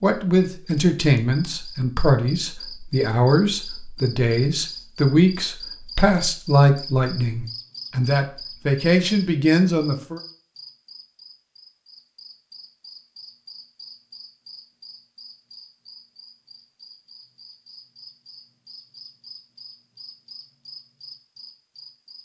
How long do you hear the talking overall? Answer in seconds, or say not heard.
10 s.